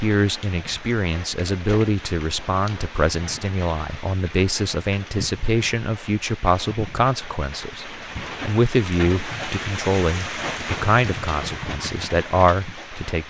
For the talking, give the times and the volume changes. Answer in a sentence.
You can hear the talking from 0.0 to 13.2 s, at a steady volume.